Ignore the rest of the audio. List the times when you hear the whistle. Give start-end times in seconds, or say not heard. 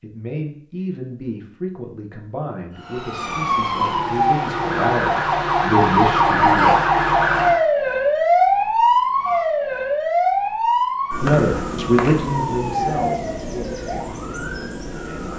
11.2-12.2.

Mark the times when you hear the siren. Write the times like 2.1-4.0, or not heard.
2.8-15.3.